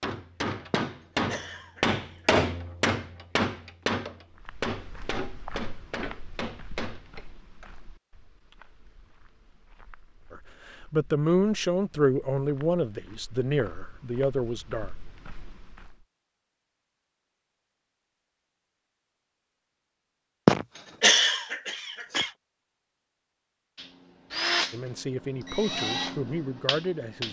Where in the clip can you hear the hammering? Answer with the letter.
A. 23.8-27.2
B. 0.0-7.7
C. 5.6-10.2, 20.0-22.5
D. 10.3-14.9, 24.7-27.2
B.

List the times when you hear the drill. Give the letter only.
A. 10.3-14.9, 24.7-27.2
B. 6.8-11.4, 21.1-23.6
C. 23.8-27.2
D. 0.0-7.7
C.